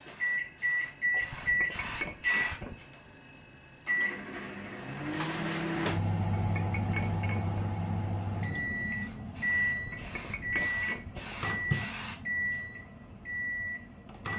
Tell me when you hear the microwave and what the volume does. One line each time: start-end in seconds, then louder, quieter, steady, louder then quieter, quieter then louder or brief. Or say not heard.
0.0-14.3 steady.